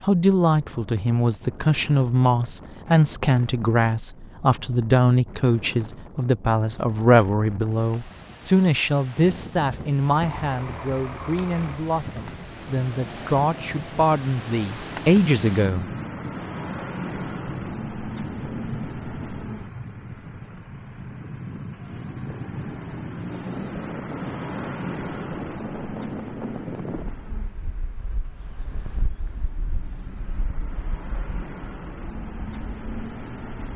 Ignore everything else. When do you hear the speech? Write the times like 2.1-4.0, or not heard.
0.0-15.9.